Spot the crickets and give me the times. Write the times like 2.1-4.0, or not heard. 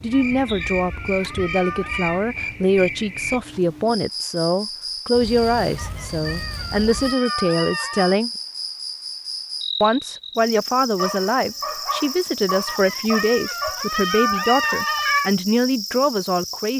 0.0-16.7.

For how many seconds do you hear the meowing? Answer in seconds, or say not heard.
7 s.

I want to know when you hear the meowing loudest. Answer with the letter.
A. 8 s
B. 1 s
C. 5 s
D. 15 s
D.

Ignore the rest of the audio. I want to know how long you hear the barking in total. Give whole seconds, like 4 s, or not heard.
3 s.